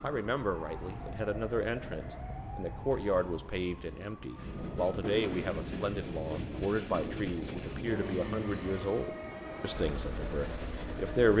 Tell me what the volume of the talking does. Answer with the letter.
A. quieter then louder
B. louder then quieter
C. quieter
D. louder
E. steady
E.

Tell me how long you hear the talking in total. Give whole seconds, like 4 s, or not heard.
11 s.